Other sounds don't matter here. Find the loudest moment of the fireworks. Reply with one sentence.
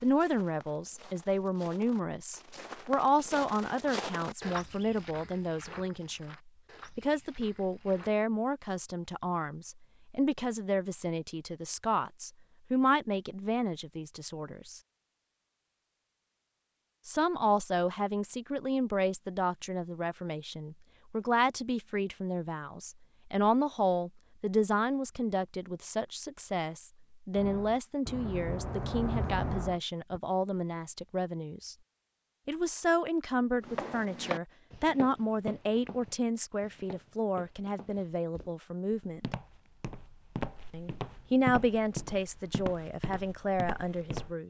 The loudest moment of the fireworks is at 29 seconds.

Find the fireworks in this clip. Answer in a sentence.
You can hear the fireworks from 27.3 to 30.2 s.